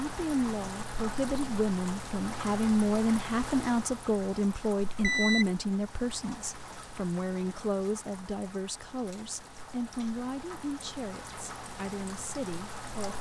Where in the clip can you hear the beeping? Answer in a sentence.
You can hear the beeping from 5.0 to 5.5 s.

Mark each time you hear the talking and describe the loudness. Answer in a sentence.
The talking can be heard from 0.0 to 13.1 s, getting quieter.